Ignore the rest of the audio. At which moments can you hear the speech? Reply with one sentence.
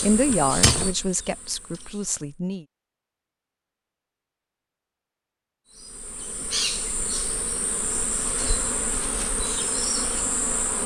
The speech can be heard from 0.0 to 2.6 s.